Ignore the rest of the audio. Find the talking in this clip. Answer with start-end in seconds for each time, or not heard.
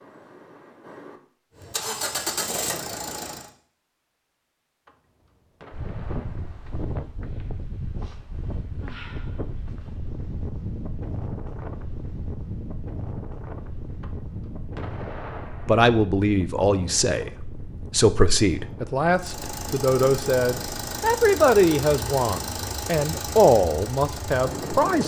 15.7-25.0.